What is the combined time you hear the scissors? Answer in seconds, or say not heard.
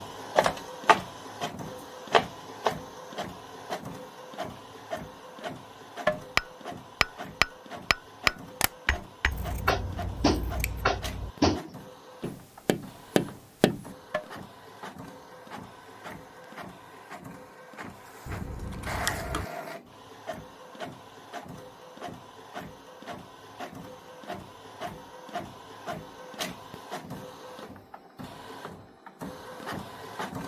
3 s.